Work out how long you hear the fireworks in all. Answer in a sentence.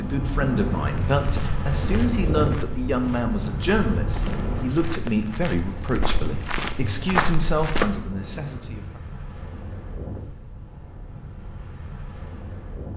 You can't hear the fireworks here.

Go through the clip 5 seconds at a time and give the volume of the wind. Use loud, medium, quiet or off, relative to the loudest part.
loud, medium, medium.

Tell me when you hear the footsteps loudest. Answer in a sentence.
The volume of the footsteps peaks at 7 seconds.